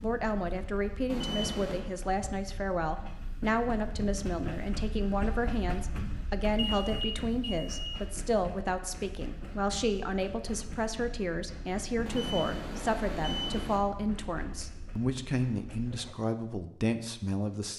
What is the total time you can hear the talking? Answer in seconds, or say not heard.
18 s.